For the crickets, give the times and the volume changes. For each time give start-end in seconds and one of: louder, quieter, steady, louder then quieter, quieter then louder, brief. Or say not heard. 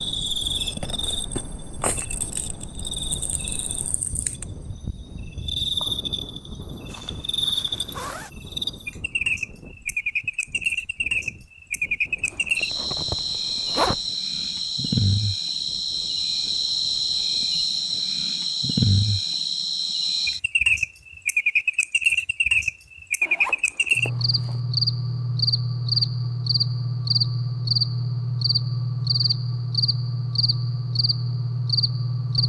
0.0-32.4 louder.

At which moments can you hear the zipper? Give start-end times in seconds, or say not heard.
6.8-8.3, 12.2-14.0, 23.2-24.6.